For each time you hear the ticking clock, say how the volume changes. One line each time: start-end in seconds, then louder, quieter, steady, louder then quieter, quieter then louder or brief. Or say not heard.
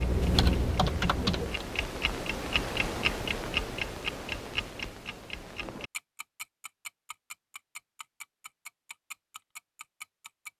0.0-10.5 louder then quieter.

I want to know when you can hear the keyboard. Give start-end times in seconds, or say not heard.
0.0-1.6.